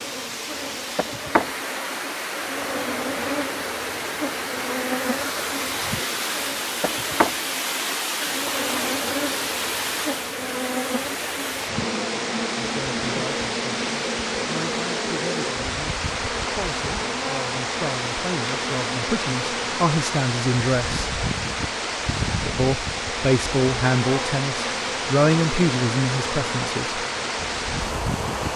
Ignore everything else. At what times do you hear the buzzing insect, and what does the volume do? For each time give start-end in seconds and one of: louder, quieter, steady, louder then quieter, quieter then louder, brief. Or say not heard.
0.0-28.5 steady.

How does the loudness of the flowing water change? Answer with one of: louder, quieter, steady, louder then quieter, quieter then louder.
steady.